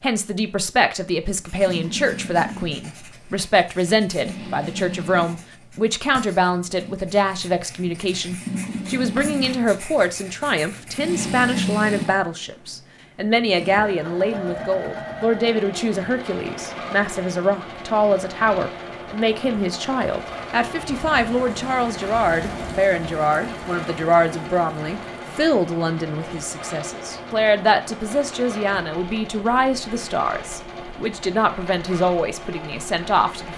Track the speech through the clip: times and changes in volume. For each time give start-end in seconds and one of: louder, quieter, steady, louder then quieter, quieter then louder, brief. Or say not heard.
0.0-33.5 steady.